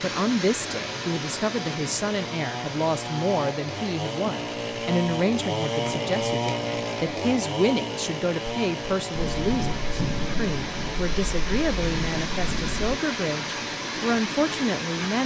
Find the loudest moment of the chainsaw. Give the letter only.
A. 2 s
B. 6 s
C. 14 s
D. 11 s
B.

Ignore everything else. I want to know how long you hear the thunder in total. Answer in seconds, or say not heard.
4 s.